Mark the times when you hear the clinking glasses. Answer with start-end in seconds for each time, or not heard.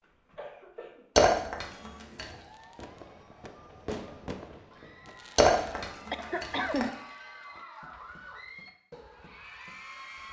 1.1-2.2, 5.3-6.8.